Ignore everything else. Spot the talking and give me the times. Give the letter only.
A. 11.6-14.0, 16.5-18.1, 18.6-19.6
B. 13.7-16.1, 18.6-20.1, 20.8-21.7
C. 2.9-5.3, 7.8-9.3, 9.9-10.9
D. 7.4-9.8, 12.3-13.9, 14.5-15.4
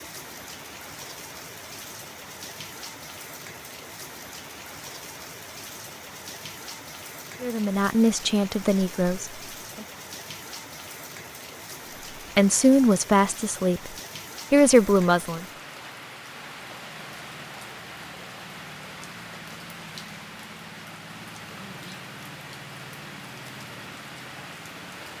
D.